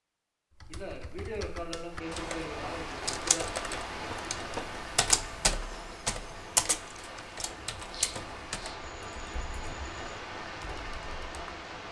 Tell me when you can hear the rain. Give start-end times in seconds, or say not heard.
1.9-11.8.